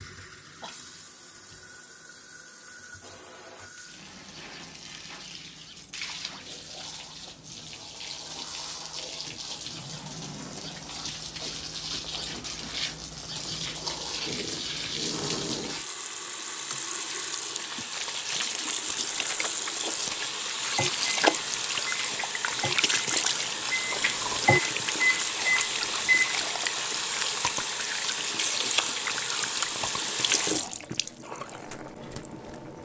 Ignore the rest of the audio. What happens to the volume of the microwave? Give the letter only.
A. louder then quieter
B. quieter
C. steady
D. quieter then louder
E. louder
E.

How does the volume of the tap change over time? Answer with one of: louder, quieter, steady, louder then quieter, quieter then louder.
louder.